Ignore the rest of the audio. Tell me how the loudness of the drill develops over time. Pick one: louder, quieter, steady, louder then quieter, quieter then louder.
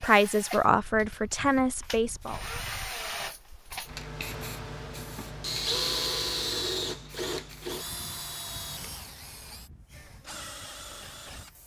louder then quieter.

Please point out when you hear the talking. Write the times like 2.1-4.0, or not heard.
0.0-2.4.